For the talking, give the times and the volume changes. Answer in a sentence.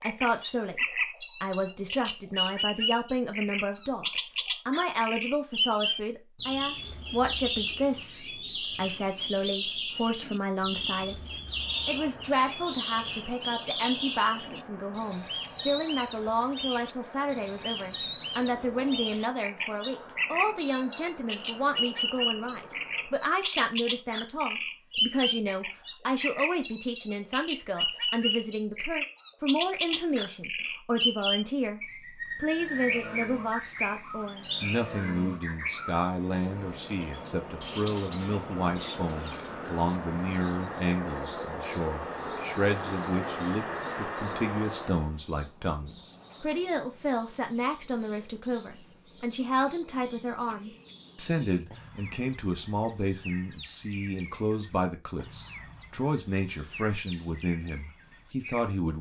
The talking can be heard briefly from 0.0 to 0.8 s; and from 1.4 to 58.9 s, at a steady volume.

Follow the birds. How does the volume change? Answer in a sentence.
The volume of the birds goes down.